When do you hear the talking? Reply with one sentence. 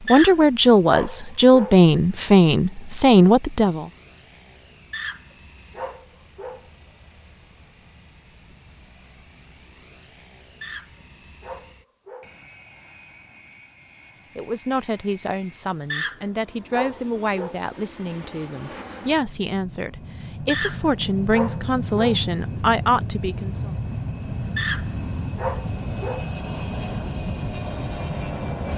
The talking can be heard from 0.1 to 3.9 s and from 14.3 to 23.7 s.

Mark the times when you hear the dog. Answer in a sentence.
The dog can be heard from 0.1 to 1.8 s, from 4.9 to 6.7 s, from 10.6 to 12.3 s, from 15.9 to 17.6 s, from 20.4 to 22.2 s and from 24.6 to 26.3 s.